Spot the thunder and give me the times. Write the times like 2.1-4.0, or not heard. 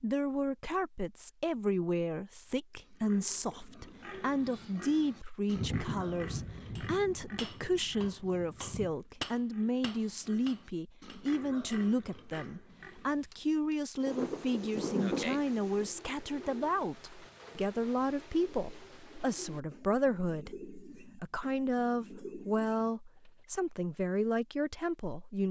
5.5-8.9, 14.1-15.9.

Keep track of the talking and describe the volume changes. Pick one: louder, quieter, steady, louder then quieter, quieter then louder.
steady.